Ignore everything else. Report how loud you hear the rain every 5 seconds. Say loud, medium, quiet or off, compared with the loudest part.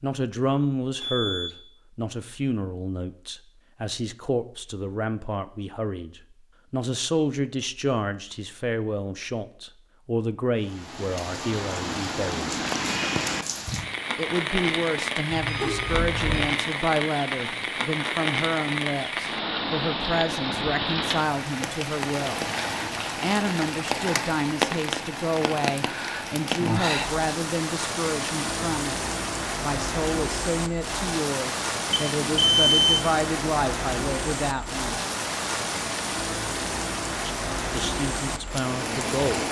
off, off, loud, loud, loud, loud, loud, loud.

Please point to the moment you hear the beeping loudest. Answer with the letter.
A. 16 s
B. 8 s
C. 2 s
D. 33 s
D.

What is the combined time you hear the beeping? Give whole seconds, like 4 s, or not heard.
3 s.